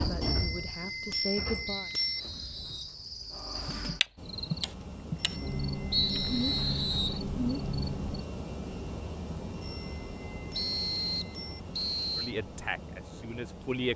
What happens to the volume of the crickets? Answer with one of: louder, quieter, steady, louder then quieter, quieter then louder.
louder.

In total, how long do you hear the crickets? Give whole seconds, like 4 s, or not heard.
8 s.